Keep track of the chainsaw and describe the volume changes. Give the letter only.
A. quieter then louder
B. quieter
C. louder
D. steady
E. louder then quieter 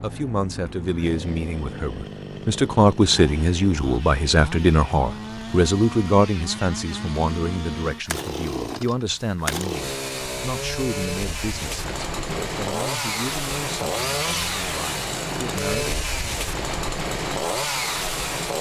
C.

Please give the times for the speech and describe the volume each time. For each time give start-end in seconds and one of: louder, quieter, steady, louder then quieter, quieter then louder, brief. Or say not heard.
0.0-16.0 quieter.